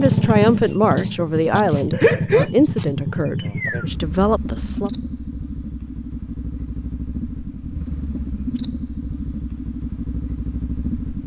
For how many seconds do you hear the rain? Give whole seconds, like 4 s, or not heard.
not heard.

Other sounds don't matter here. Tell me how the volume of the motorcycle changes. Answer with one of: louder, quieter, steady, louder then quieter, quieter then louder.
quieter.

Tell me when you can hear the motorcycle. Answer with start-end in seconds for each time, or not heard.
0.0-11.2.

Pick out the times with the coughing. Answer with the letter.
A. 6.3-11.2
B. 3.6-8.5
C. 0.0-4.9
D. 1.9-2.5
D.